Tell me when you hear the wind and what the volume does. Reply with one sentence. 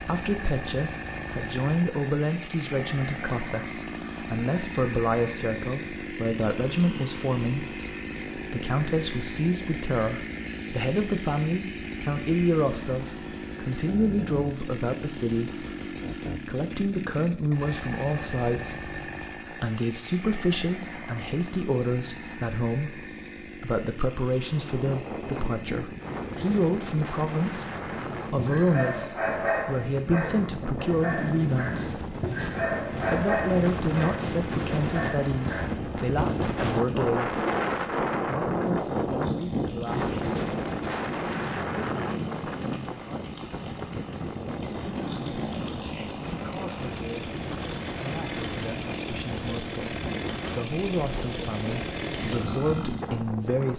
You can hear the wind from 24.4 to 53.7 s, getting louder then quieter.